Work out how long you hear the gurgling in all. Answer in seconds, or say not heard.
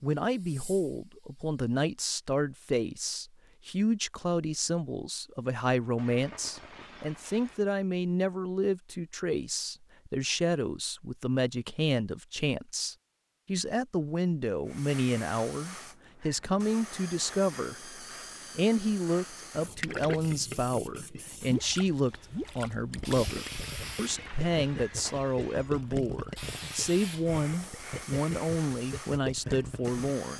10 s.